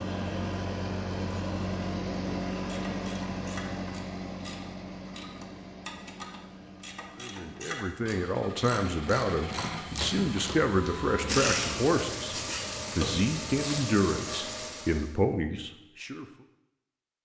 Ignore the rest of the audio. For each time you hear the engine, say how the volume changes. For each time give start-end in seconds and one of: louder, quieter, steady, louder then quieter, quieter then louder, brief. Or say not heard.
0.0-15.2 quieter then louder.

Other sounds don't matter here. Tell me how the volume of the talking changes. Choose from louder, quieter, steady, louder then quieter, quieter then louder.
steady.